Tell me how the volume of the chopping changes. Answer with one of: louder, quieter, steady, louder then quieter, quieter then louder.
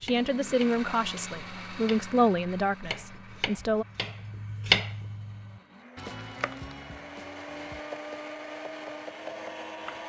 louder then quieter.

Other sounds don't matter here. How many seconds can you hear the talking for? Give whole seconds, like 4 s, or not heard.
4 s.